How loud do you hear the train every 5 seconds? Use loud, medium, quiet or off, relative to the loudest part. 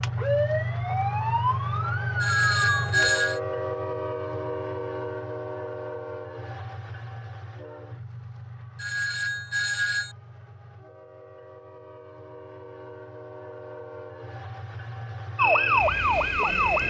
loud, medium, quiet, medium.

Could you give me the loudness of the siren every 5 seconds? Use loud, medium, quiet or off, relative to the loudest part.
medium, off, off, loud.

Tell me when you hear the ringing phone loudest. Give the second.
3 s.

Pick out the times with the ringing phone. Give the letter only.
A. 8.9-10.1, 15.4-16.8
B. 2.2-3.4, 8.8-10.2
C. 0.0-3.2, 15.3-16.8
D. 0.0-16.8
B.